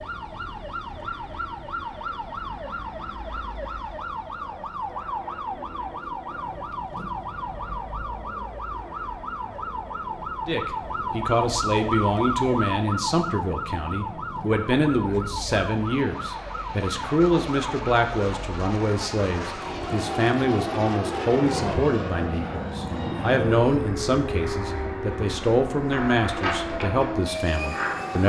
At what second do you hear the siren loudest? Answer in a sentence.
The loudest moment of the siren is at 12 seconds.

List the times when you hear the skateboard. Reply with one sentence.
The skateboard can be heard from 25.9 to 28.2 s.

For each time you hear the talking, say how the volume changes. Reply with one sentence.
The talking can be heard from 10.4 to 28.2 s, at a steady volume.